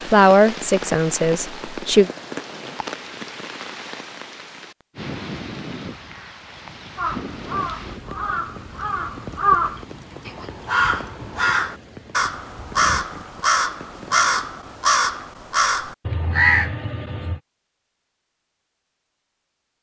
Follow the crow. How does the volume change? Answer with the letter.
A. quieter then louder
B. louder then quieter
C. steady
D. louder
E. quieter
D.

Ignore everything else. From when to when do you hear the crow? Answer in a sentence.
The crow can be heard from 7.0 to 17.4 s.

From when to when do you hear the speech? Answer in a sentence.
You can hear the speech from 0.1 to 2.1 s.